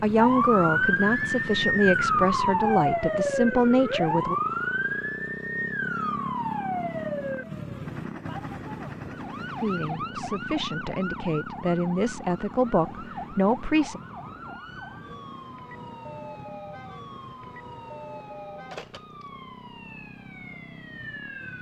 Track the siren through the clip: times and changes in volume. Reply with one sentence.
The siren can be heard from 0.1 to 21.5 s, getting quieter.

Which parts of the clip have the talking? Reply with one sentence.
You can hear the talking from 0.0 to 4.3 s and from 9.6 to 14.0 s.